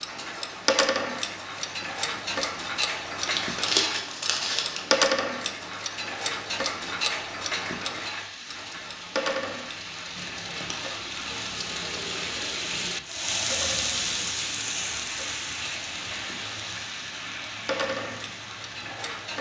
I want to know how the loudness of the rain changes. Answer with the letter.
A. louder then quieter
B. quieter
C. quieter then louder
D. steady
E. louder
A.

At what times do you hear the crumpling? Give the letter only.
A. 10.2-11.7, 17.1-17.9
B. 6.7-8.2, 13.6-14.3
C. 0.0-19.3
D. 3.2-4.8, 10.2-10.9
D.